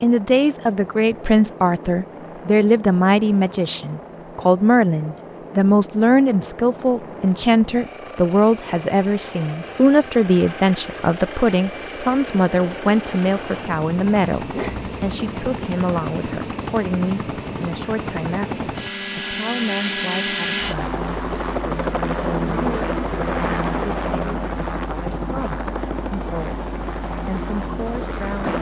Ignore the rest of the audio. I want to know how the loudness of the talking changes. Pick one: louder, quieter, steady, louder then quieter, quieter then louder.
quieter.